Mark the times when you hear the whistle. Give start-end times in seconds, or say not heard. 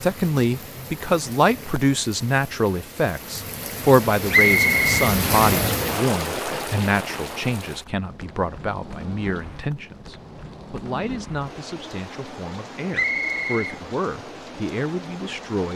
4.3-4.9, 12.9-13.8.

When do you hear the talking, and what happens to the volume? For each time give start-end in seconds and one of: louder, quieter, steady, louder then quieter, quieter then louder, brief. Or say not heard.
0.0-15.7 quieter.